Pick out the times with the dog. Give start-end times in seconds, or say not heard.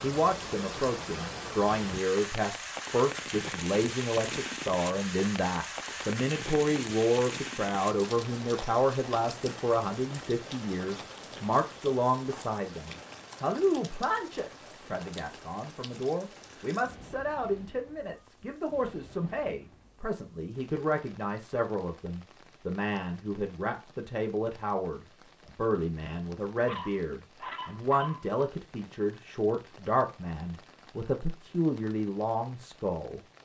26.6-28.2.